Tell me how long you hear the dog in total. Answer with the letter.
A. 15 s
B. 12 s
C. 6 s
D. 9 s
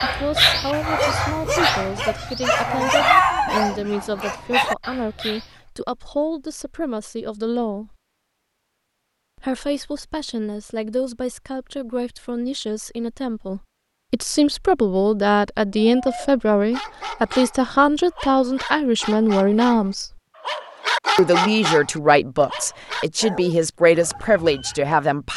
A.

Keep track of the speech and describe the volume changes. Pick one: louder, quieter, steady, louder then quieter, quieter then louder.
louder.